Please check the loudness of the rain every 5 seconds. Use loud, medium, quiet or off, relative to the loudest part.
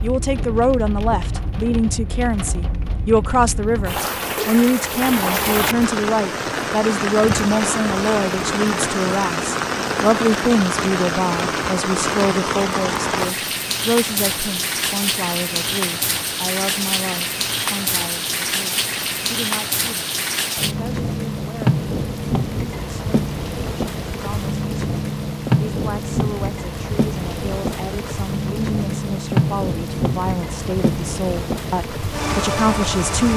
medium, loud, loud, loud, loud, loud, loud.